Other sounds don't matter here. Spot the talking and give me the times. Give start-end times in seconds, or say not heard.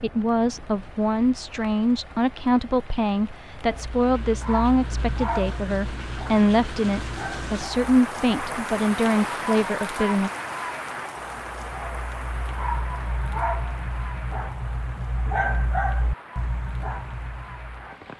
0.0-10.3.